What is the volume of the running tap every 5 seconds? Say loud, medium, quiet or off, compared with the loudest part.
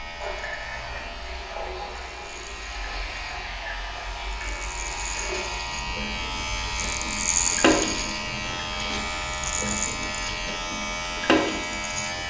medium, loud, loud.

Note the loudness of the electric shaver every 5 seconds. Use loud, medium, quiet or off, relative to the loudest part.
medium, loud, loud.